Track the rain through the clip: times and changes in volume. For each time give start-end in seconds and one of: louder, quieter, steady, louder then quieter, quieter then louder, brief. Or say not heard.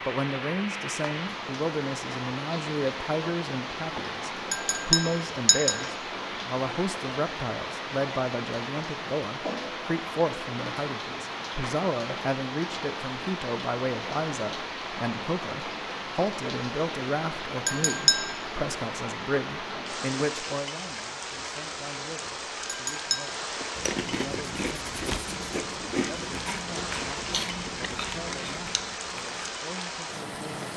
0.0-30.7 steady.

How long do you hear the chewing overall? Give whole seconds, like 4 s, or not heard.
6 s.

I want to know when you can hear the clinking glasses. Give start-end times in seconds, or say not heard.
4.5-5.8, 17.6-18.4, 22.6-23.4.